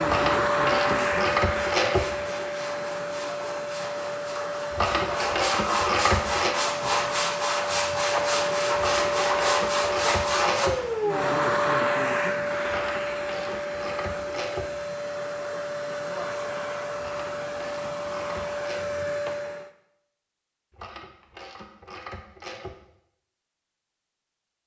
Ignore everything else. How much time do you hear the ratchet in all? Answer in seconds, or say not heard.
12 s.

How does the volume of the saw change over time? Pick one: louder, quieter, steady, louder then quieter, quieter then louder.
louder.